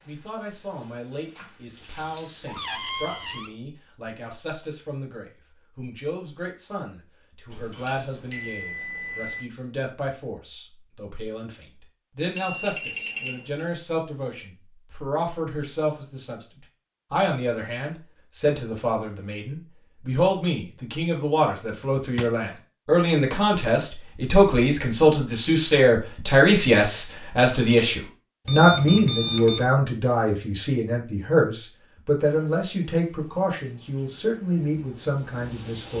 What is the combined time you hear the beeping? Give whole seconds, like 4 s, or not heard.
4 s.